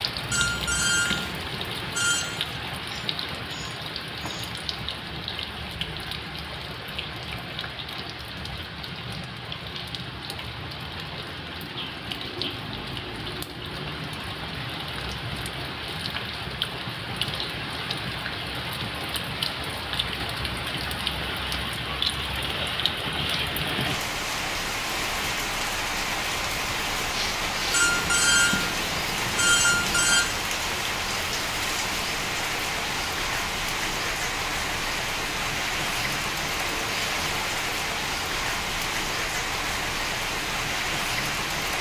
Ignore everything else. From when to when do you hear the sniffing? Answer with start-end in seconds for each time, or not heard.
2.8-4.5, 27.1-27.9.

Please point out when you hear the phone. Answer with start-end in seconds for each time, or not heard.
0.3-2.2, 27.7-30.2.